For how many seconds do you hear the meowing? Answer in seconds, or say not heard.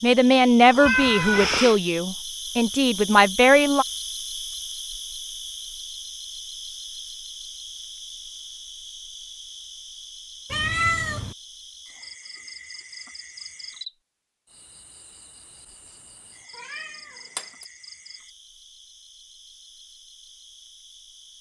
3 s.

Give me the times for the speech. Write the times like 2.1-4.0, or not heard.
0.0-3.9.